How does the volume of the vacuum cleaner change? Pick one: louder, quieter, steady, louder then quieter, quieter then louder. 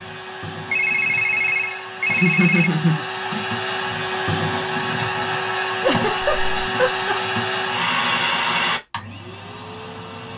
louder.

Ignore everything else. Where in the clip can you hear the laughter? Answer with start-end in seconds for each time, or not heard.
2.1-3.5, 5.8-7.2.